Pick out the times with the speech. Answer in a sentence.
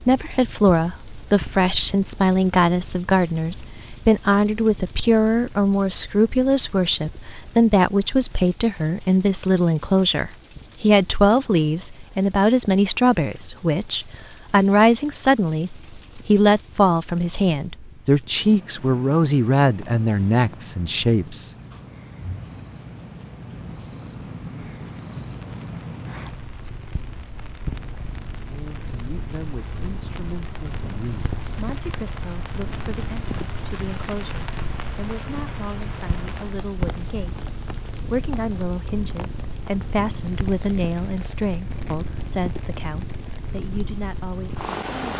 The speech can be heard from 0.0 to 21.5 s and from 28.4 to 45.1 s.